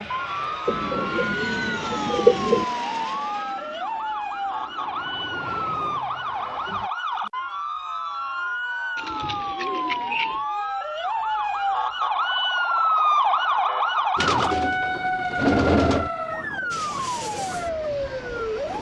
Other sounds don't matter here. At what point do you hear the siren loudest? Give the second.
13 s.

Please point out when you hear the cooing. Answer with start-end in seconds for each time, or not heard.
0.7-2.6, 8.9-10.4, 14.2-16.1.